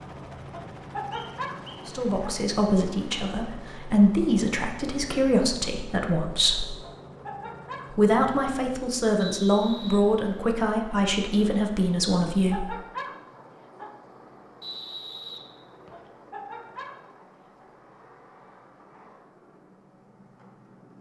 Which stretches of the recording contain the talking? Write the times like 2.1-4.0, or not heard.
1.9-6.7, 7.9-12.7.